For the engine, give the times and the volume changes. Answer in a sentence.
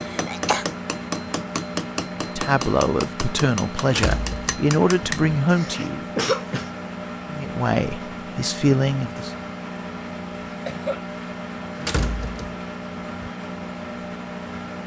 The engine can be heard from 0.0 to 14.8 s, at a steady volume.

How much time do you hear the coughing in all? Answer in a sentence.
You can hear the coughing for 3 seconds altogether.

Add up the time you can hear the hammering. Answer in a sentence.
The hammering can be heard for 5 seconds in total.